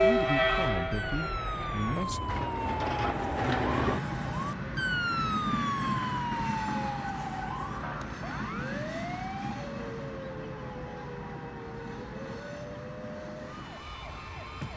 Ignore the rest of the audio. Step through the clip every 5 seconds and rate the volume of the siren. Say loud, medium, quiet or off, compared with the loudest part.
loud, loud, medium.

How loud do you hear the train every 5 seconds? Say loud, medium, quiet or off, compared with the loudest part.
loud, medium, quiet.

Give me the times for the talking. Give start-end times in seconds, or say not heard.
0.0-2.5.